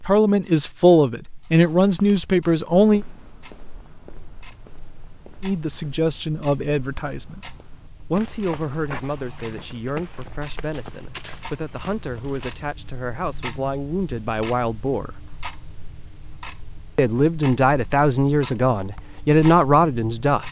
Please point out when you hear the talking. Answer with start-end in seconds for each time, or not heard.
0.0-3.0, 5.4-7.4, 8.1-15.2, 16.9-20.4.